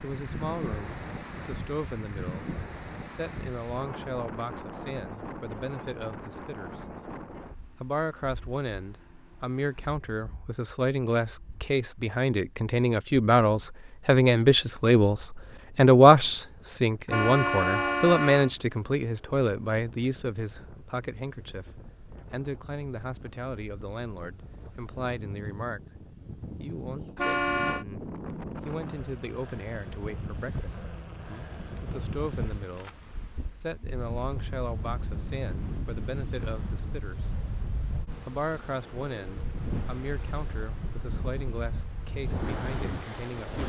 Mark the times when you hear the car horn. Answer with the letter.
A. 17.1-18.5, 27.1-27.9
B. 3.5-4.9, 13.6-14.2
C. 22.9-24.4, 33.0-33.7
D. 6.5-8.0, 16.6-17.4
A.